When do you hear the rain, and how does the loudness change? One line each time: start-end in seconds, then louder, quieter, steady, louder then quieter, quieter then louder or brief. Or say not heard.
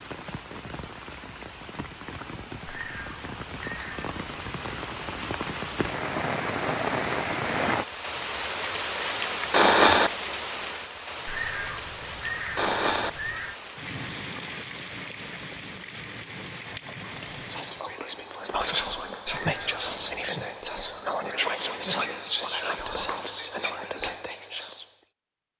0.0-18.0 louder then quieter.